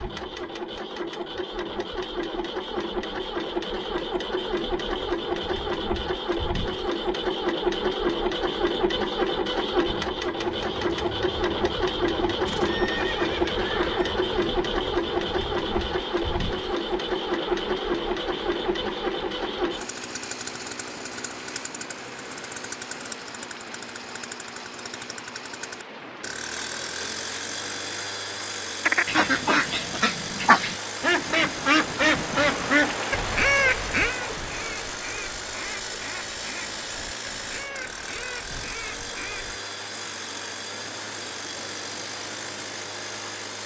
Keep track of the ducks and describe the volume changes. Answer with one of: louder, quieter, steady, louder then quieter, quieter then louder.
quieter.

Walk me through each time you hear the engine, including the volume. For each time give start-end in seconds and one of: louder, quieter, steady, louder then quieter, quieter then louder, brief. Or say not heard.
0.0-43.6 quieter.